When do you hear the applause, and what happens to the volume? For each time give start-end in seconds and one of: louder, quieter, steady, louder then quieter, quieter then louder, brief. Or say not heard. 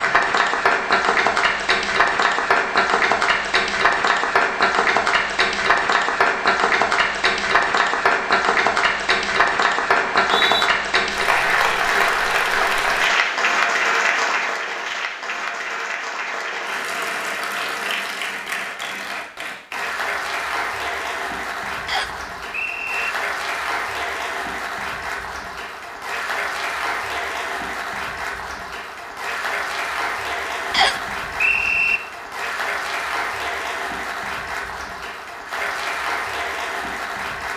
0.0-37.5 quieter.